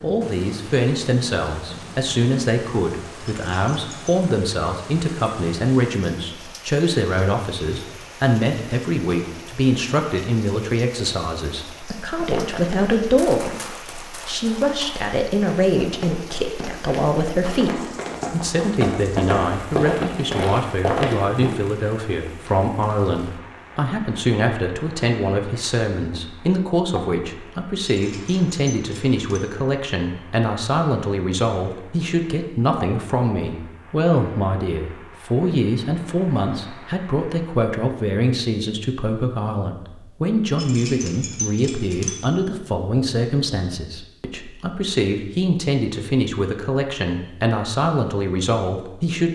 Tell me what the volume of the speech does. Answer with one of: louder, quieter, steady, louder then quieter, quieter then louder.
steady.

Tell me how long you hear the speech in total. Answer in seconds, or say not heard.
49 s.